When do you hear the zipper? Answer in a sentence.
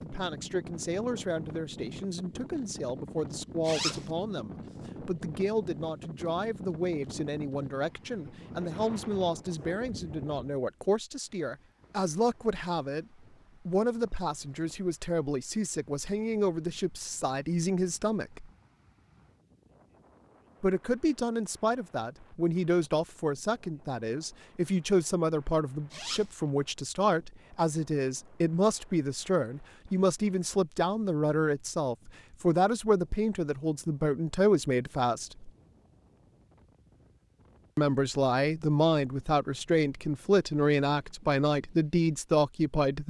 The zipper can be heard from 3.6 to 4.1 s and from 25.9 to 26.4 s.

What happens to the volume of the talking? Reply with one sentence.
The loudness of the talking goes up.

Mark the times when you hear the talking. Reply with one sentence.
The talking can be heard from 0.0 to 13.1 s, from 13.7 to 18.5 s, from 20.6 to 35.5 s and from 37.8 to 43.0 s.